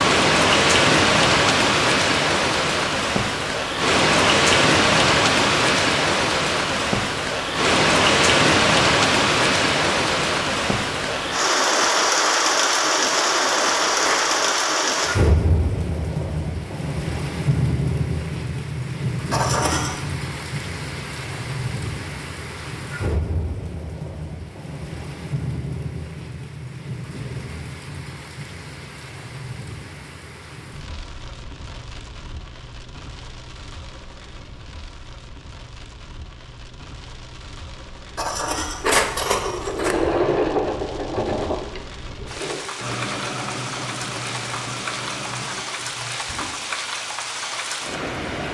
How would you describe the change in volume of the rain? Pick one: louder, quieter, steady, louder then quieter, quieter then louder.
quieter then louder.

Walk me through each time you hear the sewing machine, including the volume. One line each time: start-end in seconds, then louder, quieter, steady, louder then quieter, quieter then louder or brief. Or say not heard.
39.4-46.5 quieter.